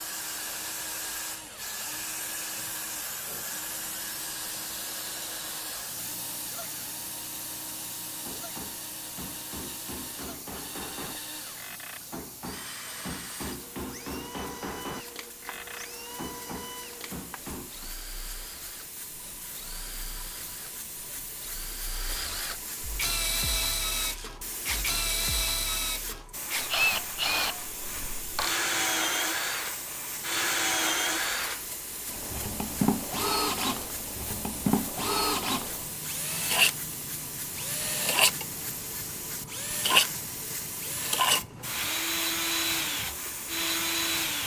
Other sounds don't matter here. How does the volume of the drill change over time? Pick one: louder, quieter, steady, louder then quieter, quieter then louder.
louder.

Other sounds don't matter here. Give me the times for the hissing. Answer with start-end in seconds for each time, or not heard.
0.0-44.4.